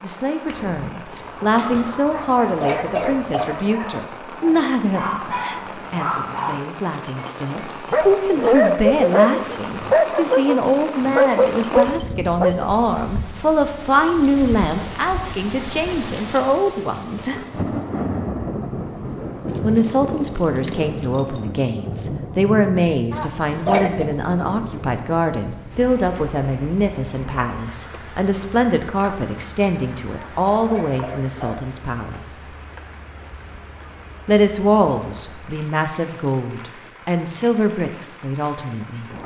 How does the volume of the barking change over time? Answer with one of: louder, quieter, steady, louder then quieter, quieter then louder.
louder.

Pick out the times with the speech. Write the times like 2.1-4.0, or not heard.
0.0-17.4, 19.6-32.4, 34.2-39.1.